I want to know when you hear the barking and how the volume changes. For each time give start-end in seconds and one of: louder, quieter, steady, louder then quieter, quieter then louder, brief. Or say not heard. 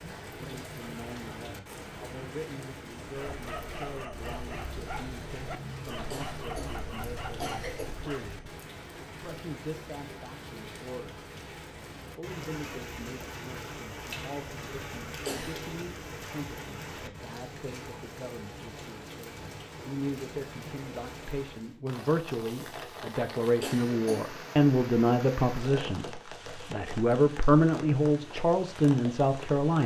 3.0-8.3 steady.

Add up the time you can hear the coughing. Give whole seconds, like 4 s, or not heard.
3 s.